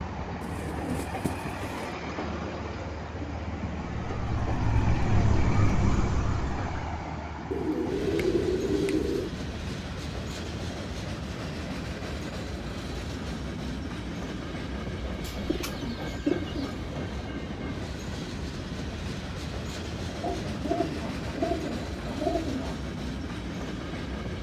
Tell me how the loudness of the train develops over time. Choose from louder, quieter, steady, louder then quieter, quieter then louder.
steady.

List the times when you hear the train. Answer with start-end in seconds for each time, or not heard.
0.0-24.3.